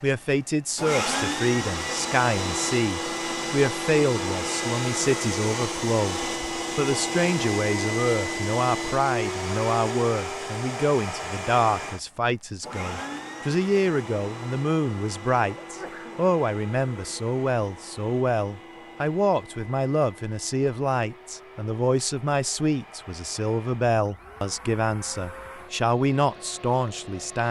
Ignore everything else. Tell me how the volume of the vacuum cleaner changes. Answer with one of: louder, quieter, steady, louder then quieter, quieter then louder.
quieter.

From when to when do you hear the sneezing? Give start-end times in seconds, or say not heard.
15.6-16.2.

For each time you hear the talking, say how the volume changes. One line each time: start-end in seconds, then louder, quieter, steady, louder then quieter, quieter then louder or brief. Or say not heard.
0.0-27.4 steady.